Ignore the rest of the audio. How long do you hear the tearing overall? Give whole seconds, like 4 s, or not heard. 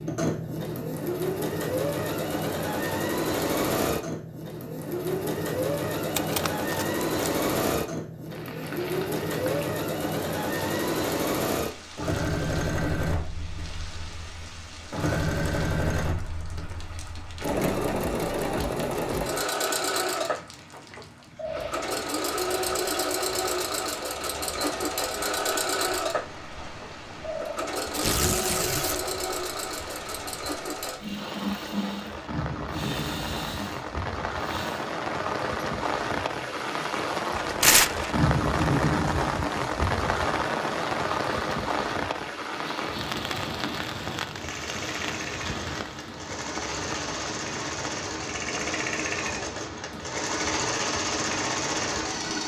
3 s.